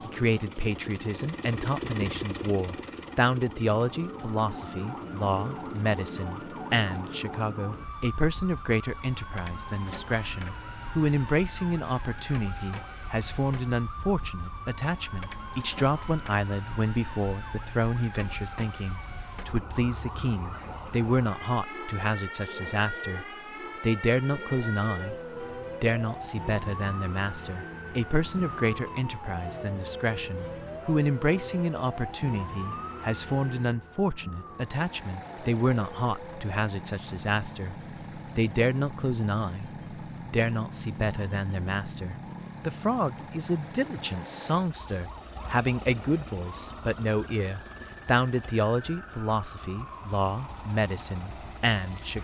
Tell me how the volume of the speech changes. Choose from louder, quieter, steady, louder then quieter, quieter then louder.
steady.